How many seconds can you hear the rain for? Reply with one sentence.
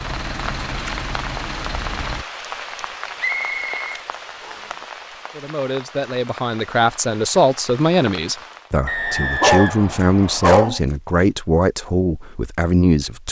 You can hear the rain for 9 seconds altogether.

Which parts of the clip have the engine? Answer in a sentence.
The engine can be heard from 0.0 to 2.2 s.